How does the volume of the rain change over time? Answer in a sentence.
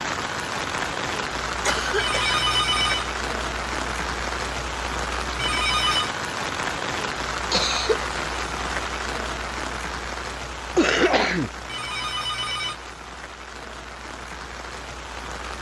The volume of the rain goes down.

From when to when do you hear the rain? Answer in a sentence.
The rain can be heard from 0.0 to 15.5 s.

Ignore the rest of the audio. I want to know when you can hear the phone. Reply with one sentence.
You can hear the phone from 1.9 to 3.1 s, from 5.3 to 6.2 s and from 11.7 to 12.8 s.